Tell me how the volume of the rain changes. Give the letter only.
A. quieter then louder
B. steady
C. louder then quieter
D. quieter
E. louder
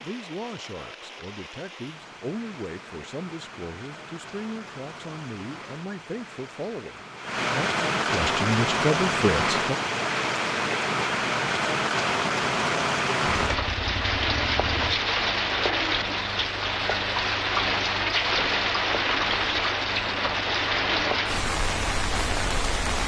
E.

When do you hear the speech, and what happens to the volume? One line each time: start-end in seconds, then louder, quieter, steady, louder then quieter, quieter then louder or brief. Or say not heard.
0.0-9.8 louder.